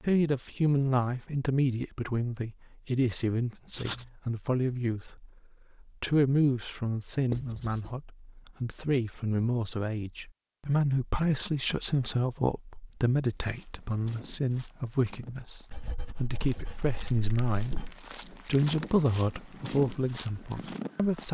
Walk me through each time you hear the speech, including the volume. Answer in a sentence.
The speech can be heard from 0.0 to 21.2 s, at a steady volume.